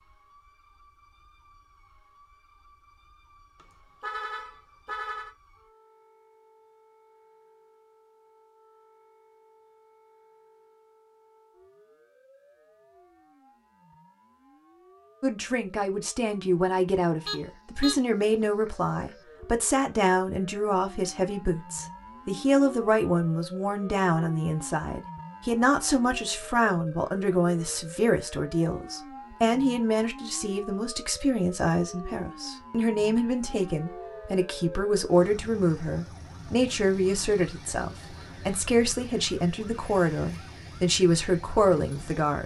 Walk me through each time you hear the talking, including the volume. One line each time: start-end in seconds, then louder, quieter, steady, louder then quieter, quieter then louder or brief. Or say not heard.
15.2-42.4 steady.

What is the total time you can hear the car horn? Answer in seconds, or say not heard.
4 s.